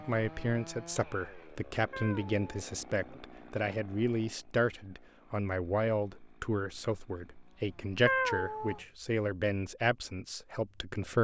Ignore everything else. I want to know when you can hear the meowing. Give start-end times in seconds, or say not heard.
1.9-3.2, 8.1-8.8.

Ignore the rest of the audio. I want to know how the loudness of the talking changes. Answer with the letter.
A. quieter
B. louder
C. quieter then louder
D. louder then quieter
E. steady
E.